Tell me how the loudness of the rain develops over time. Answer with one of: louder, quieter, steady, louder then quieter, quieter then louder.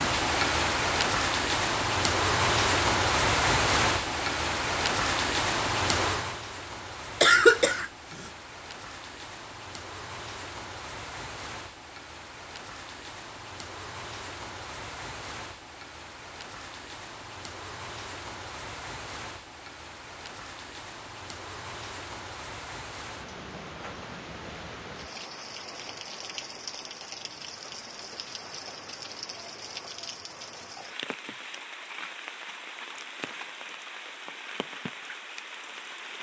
quieter.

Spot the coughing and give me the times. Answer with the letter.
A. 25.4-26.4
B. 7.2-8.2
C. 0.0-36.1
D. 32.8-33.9
B.